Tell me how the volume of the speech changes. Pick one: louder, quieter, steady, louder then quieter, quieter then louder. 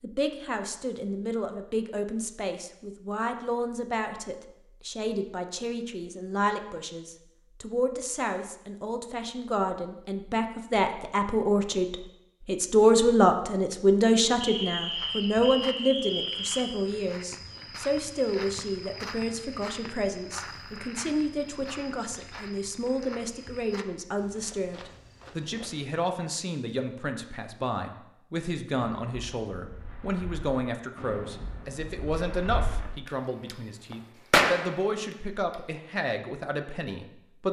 louder then quieter.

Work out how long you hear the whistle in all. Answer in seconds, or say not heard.
2 s.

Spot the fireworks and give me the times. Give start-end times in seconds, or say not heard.
28.8-35.5.